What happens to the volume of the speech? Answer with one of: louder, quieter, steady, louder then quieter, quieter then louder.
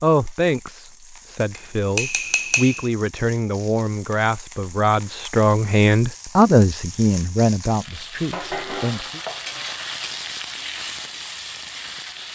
louder then quieter.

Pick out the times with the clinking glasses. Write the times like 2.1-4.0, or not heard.
1.5-2.9.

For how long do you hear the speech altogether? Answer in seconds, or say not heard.
9 s.